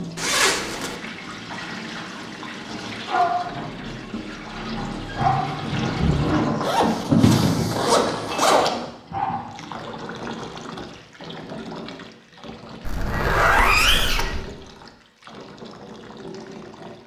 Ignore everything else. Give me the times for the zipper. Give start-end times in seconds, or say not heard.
0.1-0.9, 6.6-8.7, 12.8-14.4.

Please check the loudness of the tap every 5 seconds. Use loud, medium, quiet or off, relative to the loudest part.
medium, loud, quiet, quiet.